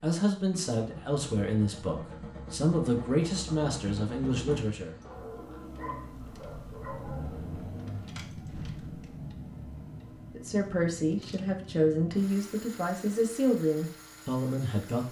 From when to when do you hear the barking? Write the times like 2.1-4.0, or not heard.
5.0-7.5.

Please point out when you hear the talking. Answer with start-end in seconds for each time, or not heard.
0.0-5.0, 10.3-15.0.